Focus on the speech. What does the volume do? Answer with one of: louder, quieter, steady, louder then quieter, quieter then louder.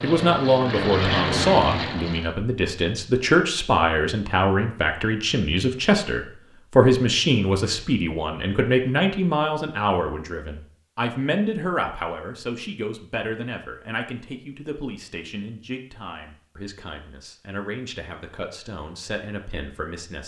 quieter.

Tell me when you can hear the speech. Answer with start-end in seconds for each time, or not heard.
0.0-20.2.